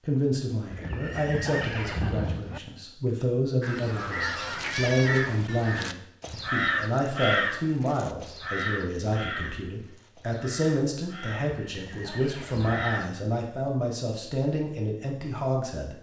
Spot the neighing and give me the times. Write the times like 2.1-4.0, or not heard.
0.7-2.6, 11.6-12.8.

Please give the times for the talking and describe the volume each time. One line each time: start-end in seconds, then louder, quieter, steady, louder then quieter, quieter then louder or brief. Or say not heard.
0.1-15.9 steady.